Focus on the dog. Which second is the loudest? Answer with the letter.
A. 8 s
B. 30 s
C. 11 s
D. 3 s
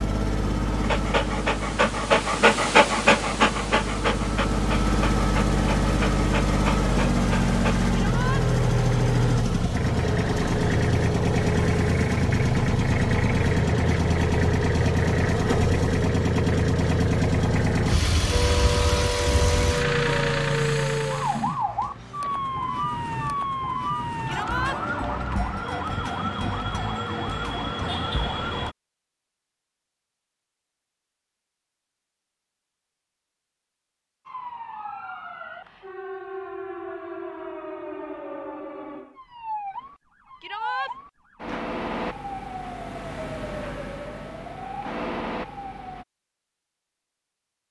D.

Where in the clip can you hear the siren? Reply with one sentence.
You can hear the siren from 18.3 to 28.8 s and from 34.2 to 46.0 s.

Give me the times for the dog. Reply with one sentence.
The dog can be heard from 0.8 to 7.9 s.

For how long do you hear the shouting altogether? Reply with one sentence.
The shouting can be heard for 2 seconds in total.